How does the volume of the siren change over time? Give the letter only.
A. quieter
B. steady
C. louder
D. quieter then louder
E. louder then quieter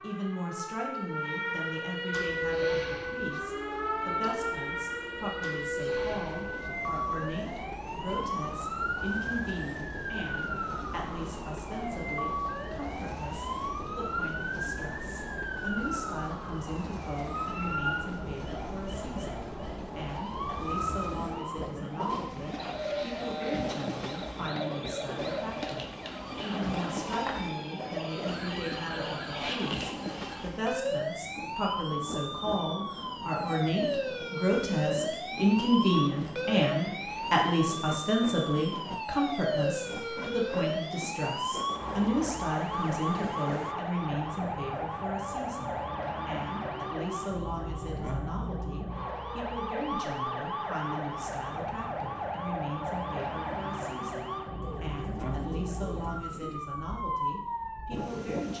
B.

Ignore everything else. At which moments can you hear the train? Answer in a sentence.
You can hear the train from 2.1 to 43.8 s.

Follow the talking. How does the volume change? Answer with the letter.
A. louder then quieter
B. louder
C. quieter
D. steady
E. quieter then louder
A.